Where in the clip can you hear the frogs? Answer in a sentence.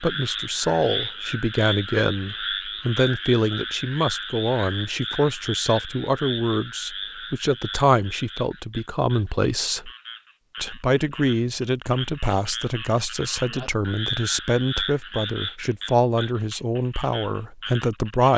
You can hear the frogs from 0.0 to 18.3 s.